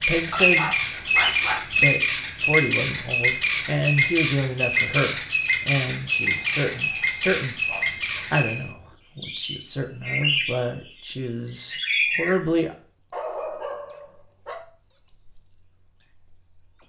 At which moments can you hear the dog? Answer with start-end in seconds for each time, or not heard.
0.3-1.6, 6.2-8.2, 13.1-14.7.